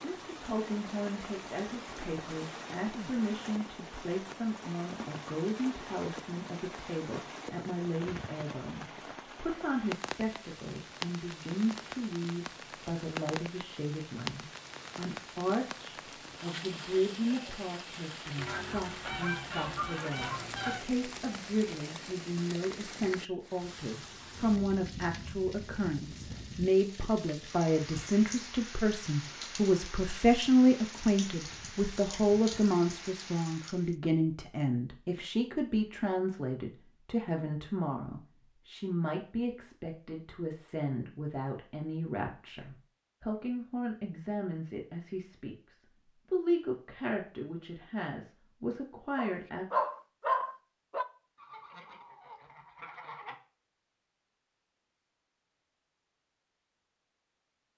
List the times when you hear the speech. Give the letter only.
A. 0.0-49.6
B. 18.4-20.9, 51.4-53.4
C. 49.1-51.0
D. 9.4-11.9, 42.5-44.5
A.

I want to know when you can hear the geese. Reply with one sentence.
The geese can be heard from 18.4 to 20.9 s and from 51.4 to 53.4 s.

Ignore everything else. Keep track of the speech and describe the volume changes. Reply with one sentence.
The loudness of the speech goes up, then down.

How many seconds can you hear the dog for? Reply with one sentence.
The dog can be heard for 2 seconds in total.